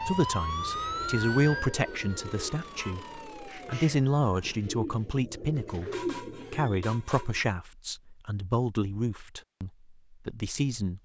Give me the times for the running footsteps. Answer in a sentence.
The running footsteps can't be heard in this clip.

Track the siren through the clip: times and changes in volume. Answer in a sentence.
You can hear the siren from 0.0 to 4.6 s, getting quieter.